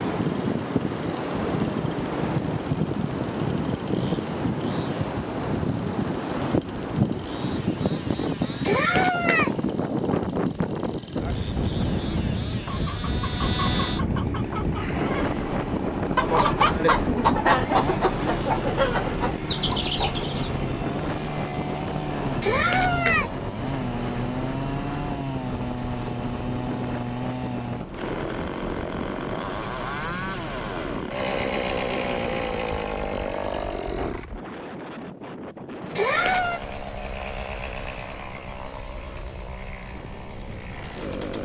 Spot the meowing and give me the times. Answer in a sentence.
You can hear the meowing from 8.7 to 9.9 s, from 22.4 to 23.4 s and from 36.0 to 36.6 s.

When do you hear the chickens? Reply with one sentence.
The chickens can be heard from 12.7 to 20.5 s.